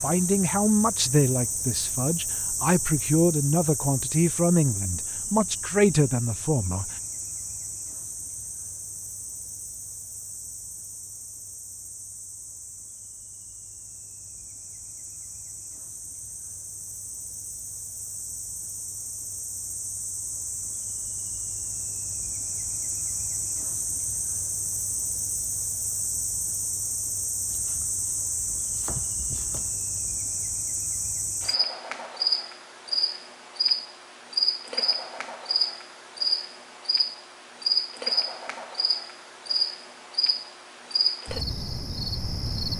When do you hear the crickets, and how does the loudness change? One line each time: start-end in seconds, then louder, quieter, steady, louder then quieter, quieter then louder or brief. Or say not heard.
0.0-42.7 quieter then louder.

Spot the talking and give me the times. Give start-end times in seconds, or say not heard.
0.0-6.9.